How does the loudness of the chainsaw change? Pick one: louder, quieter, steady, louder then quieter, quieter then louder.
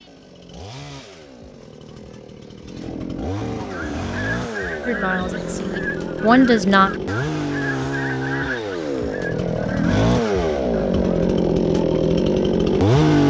louder.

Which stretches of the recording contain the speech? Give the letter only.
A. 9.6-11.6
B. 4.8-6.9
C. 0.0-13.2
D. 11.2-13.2
B.